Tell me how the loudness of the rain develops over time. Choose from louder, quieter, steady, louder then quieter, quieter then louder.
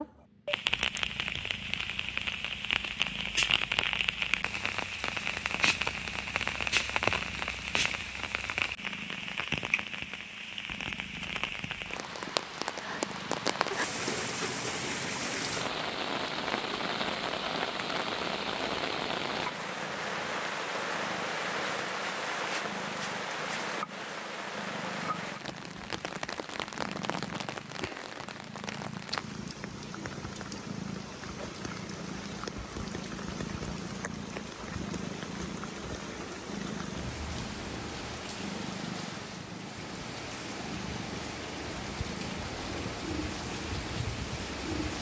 quieter.